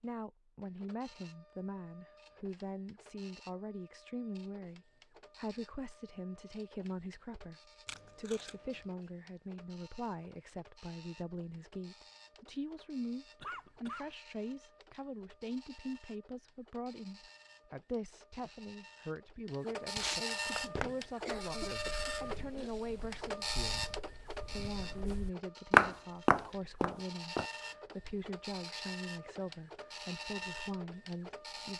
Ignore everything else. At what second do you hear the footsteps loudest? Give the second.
26 s.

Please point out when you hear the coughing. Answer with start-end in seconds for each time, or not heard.
13.4-14.2, 21.2-22.7.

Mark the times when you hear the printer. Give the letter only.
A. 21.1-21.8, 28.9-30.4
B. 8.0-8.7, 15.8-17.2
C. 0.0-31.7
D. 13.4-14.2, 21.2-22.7
C.